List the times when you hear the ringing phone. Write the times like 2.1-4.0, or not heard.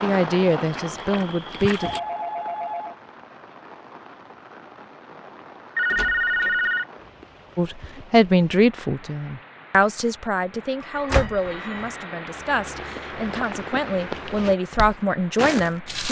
1.8-3.0, 5.8-6.8, 10.8-12.0.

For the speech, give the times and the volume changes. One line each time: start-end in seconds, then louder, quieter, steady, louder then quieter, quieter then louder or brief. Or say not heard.
0.0-1.9 brief
7.5-16.0 quieter then louder.